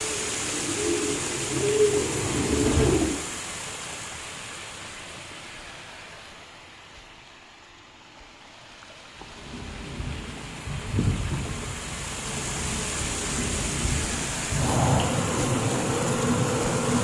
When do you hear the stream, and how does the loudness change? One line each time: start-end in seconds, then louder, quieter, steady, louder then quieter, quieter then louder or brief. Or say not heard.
0.0-16.9 quieter then louder.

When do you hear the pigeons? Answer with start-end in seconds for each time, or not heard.
0.0-3.1.